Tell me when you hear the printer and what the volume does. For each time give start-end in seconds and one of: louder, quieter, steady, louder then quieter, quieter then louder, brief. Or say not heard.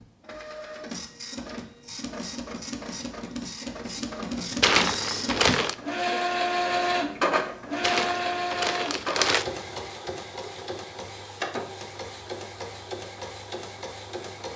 0.0-14.5 louder then quieter.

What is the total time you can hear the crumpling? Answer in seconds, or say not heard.
3 s.